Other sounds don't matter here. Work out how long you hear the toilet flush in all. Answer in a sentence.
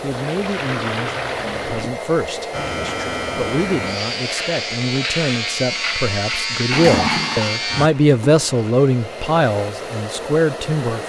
You can hear the toilet flush for 4 seconds altogether.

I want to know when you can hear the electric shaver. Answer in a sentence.
The electric shaver can be heard from 2.5 to 7.9 s.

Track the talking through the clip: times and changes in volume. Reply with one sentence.
The talking can be heard from 0.0 to 11.0 s, getting louder.